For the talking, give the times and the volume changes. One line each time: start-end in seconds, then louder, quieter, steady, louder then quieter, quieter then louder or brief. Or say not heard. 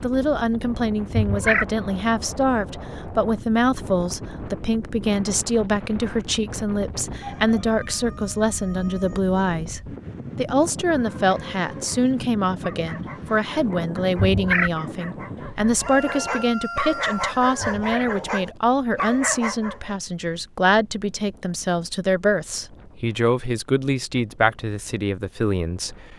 0.0-26.1 steady.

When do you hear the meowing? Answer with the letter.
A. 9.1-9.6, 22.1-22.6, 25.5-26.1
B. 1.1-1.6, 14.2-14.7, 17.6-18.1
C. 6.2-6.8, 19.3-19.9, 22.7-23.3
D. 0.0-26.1
B.